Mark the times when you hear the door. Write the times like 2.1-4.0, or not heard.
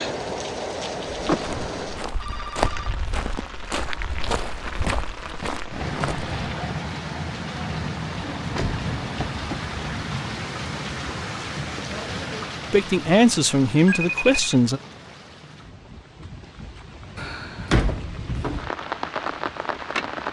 1.2-2.0, 8.2-10.1, 17.1-18.6.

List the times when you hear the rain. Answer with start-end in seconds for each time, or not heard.
0.0-20.2.